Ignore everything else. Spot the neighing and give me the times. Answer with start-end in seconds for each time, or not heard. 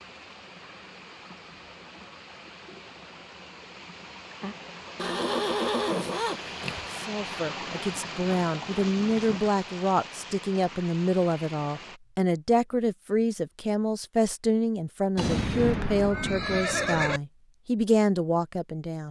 5.0-6.8, 15.2-17.2.